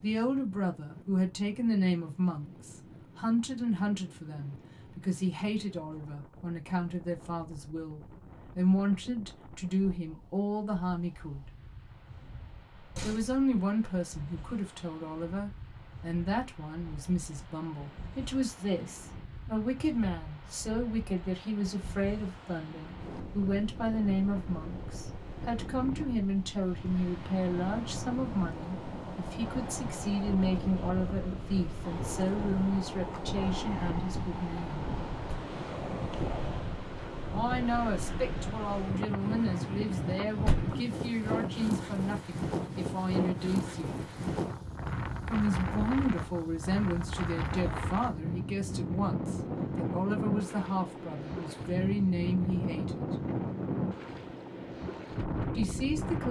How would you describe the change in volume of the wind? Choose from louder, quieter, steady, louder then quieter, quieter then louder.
louder.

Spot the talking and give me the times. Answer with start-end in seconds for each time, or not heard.
0.0-11.5, 13.0-34.9, 37.3-44.0, 45.2-53.0, 55.5-56.2.